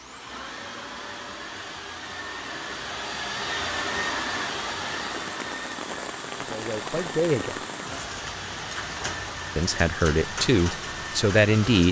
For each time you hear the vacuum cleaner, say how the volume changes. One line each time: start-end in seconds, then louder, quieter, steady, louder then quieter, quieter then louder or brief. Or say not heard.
0.0-11.8 louder then quieter.